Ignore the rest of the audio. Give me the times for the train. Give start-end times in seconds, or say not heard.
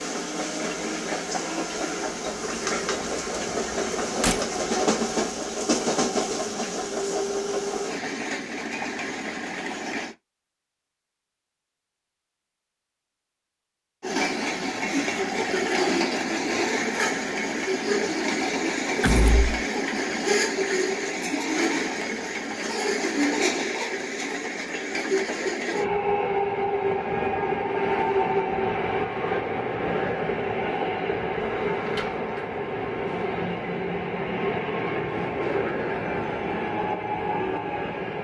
0.0-10.2, 14.0-38.1.